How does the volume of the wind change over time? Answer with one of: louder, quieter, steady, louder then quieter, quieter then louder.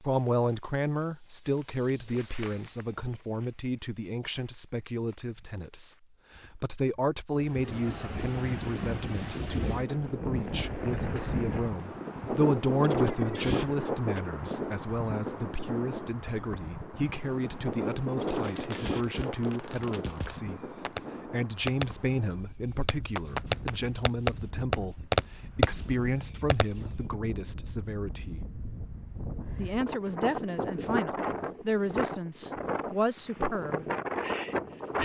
quieter then louder.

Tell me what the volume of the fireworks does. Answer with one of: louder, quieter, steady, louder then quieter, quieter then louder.
louder.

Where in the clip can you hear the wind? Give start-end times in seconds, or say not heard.
7.3-34.9.